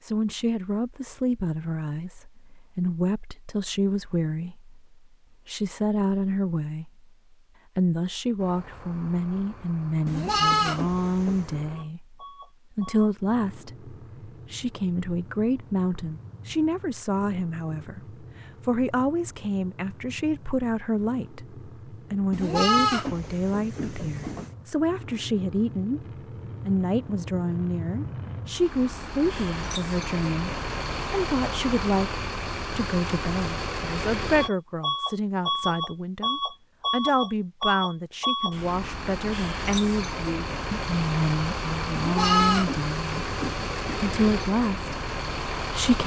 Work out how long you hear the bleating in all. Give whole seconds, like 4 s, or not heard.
6 s.